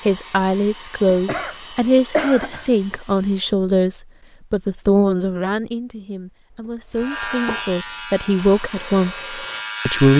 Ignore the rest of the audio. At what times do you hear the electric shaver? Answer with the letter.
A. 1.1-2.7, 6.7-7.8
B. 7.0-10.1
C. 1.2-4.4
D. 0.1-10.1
B.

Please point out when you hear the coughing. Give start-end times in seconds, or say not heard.
1.1-2.7, 6.7-7.8.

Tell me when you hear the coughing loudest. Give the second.
2 s.